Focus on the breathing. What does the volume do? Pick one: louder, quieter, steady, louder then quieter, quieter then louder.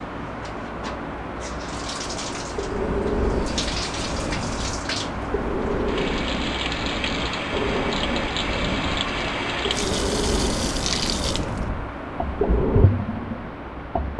steady.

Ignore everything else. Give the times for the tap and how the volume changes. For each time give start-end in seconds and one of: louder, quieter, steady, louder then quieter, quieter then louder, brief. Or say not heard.
0.0-14.1 louder.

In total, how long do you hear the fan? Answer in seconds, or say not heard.
14 s.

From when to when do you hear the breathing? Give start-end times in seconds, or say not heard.
2.5-12.9.